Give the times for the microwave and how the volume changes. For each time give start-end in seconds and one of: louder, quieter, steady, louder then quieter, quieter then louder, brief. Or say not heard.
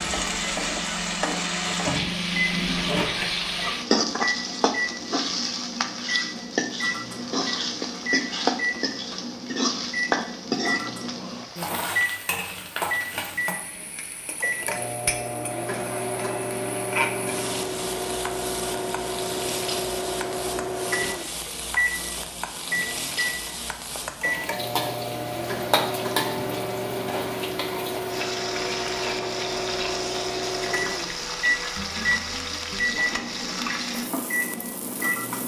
0.0-35.4 steady.